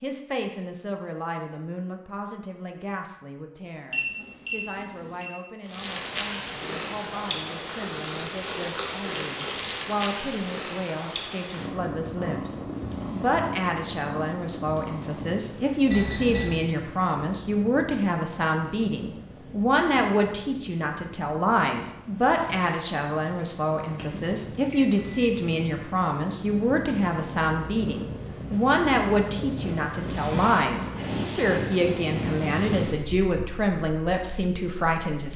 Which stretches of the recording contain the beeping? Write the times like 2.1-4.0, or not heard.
3.9-5.3, 15.9-16.6, 23.9-25.1.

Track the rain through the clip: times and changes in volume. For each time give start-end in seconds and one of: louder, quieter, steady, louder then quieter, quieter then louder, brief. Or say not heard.
not heard.